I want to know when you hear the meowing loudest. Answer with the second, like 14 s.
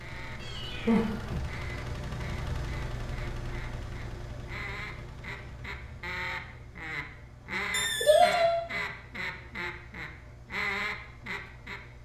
8 s.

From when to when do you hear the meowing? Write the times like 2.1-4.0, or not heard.
0.4-1.5, 7.7-8.6.